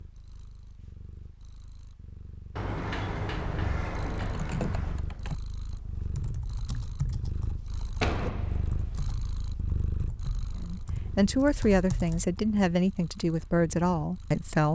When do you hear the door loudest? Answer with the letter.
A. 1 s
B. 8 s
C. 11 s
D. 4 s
B.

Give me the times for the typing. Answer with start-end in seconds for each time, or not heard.
4.3-12.3.